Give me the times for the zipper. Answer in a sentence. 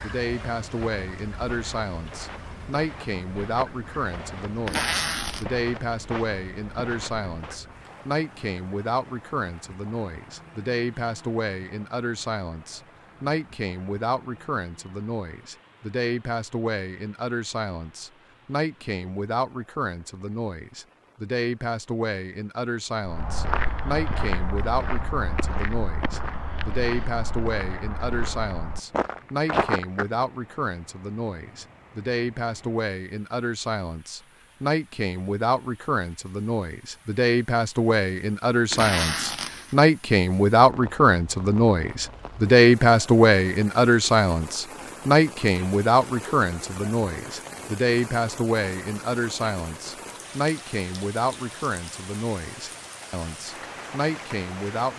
You can hear the zipper from 4.7 to 5.5 s and from 38.7 to 39.8 s.